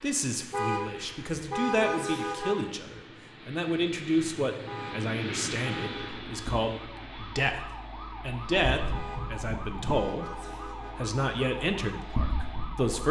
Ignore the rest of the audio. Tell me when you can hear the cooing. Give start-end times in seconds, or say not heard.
not heard.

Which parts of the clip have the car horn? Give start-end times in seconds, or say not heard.
0.5-2.6, 4.7-6.1, 8.9-11.1.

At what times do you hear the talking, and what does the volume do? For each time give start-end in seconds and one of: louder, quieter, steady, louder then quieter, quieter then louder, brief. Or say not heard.
0.0-13.0 steady.